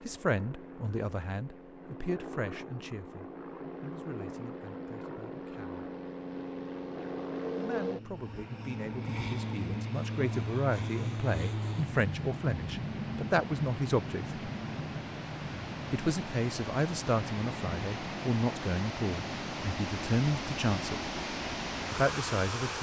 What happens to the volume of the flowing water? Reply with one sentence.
The loudness of the flowing water goes up.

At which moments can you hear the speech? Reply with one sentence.
The speech can be heard from 0.0 to 5.8 s, from 7.5 to 14.4 s, from 15.9 to 21.0 s and from 21.9 to 22.7 s.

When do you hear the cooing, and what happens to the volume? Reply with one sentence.
The cooing can't be heard in this clip.